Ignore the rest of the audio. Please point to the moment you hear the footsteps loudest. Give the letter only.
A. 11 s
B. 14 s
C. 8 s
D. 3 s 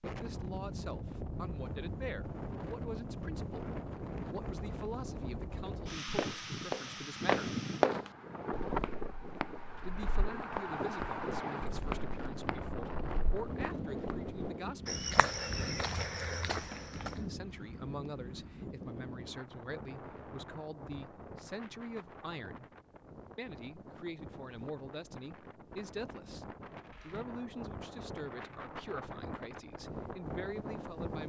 C.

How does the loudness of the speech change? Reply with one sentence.
The volume of the speech stays about the same.